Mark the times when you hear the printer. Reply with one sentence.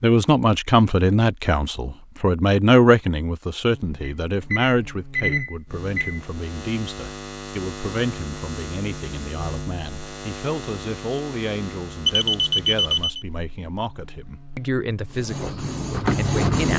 You can hear the printer from 15.1 to 16.7 s.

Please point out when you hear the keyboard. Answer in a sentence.
You can't hear the keyboard here.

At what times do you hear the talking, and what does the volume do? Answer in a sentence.
The talking can be heard from 0.0 to 15.6 s, getting quieter; and briefly from 16.1 to 16.7 s.